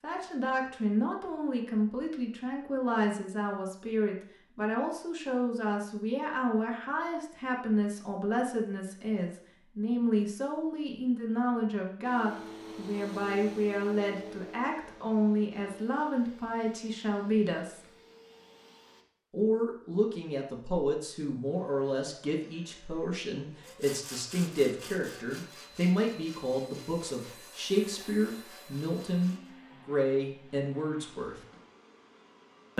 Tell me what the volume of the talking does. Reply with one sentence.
The loudness of the talking stays about the same.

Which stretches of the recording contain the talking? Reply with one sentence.
You can hear the talking from 0.0 to 17.9 s and from 19.3 to 31.4 s.